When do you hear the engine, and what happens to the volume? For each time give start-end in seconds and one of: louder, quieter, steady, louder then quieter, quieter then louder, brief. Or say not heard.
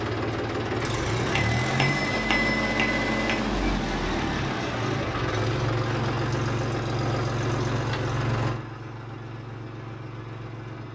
0.0-10.9 quieter.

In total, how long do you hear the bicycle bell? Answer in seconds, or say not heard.
2 s.